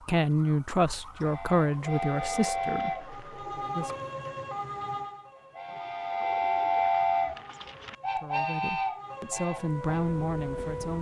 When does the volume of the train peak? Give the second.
7 s.